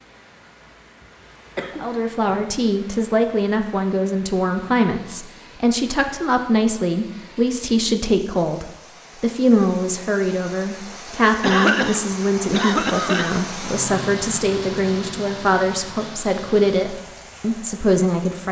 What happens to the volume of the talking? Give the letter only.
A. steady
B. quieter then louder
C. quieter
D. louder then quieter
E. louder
A.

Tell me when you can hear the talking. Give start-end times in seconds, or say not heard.
1.8-18.4.